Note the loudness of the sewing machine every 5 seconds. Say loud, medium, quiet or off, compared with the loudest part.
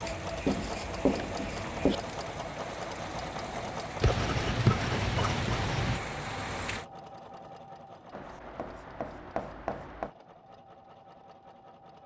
loud, medium, quiet.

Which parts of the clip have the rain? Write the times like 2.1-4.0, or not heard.
0.0-6.8.